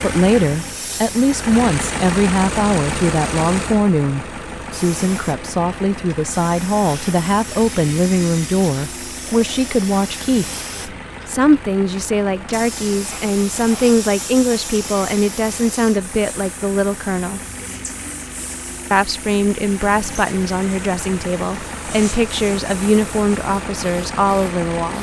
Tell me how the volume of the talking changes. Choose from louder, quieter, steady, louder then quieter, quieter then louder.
steady.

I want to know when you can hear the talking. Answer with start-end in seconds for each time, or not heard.
0.0-10.4, 11.2-17.4, 18.9-24.9.